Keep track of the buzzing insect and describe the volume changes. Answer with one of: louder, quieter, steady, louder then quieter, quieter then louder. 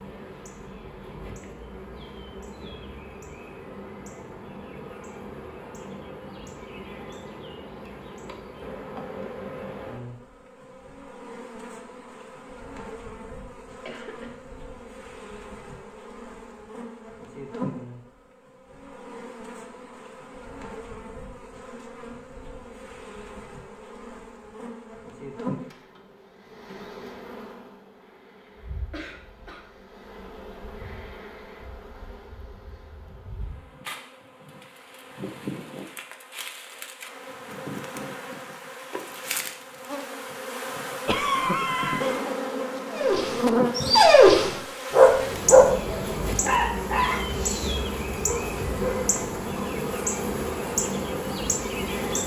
louder.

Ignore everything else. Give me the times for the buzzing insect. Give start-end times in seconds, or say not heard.
0.0-52.2.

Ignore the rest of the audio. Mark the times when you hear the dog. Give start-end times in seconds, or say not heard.
42.9-49.6.